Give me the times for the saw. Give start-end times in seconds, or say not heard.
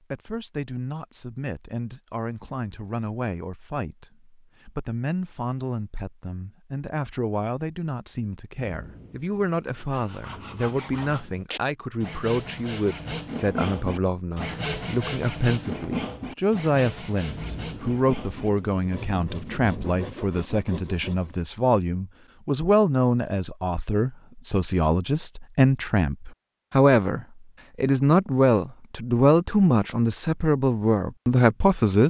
9.8-21.4.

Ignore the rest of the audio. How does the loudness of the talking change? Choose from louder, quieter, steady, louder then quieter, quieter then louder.
louder.